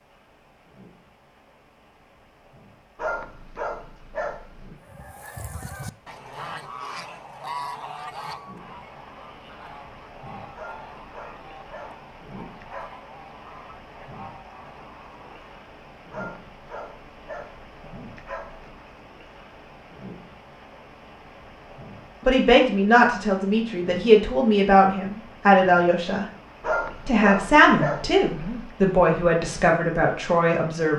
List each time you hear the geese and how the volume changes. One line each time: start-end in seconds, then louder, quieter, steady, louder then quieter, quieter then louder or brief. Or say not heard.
4.8-15.7 quieter.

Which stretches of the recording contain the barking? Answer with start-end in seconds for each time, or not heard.
3.0-4.8, 10.6-12.9, 16.1-18.6, 26.6-28.7.